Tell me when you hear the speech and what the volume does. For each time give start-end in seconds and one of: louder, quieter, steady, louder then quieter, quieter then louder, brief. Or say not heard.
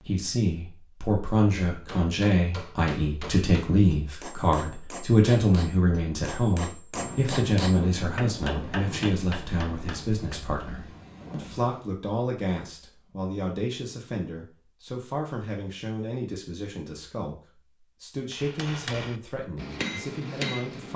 0.0-20.9 quieter.